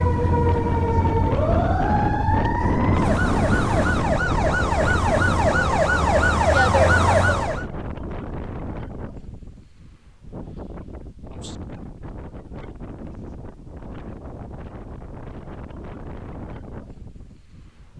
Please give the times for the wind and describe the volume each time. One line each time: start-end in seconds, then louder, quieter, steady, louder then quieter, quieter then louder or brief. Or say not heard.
0.0-17.9 quieter.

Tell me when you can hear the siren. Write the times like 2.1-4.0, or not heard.
0.0-7.7.